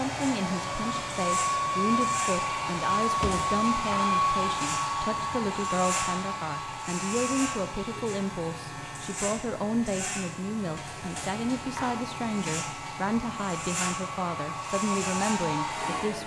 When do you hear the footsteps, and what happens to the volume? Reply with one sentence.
The footsteps can't be heard in this clip.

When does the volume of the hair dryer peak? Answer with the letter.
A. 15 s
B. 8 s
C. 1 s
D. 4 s
D.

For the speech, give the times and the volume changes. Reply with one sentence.
The speech can be heard from 0.0 to 16.2 s, at a steady volume.